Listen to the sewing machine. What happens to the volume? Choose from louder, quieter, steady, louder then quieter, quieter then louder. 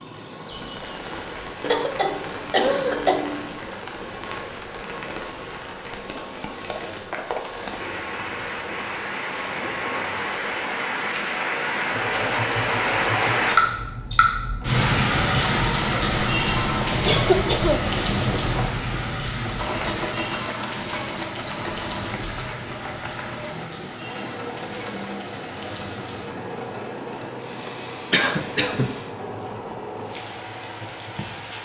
louder then quieter.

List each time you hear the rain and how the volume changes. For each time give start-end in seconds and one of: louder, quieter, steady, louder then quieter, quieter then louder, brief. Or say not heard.
0.0-31.5 louder then quieter.